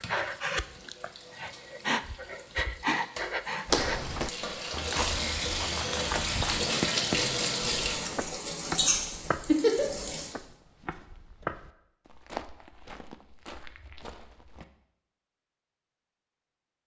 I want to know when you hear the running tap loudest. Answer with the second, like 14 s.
9 s.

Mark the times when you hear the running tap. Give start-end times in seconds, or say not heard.
0.0-10.3.